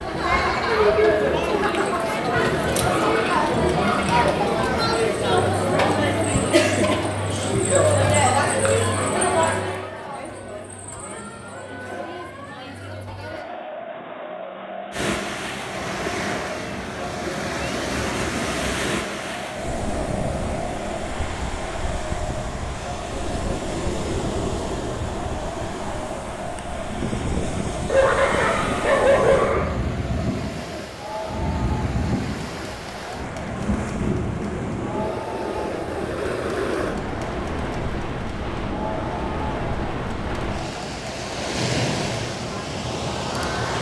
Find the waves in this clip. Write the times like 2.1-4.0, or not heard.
14.9-43.7.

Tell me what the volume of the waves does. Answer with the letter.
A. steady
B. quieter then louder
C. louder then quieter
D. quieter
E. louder
A.